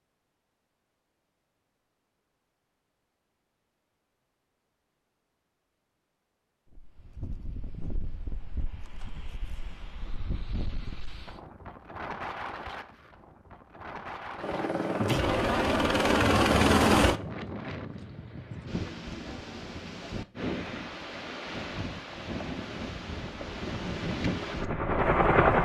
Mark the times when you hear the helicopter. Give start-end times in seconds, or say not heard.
14.3-17.1, 23.3-25.6.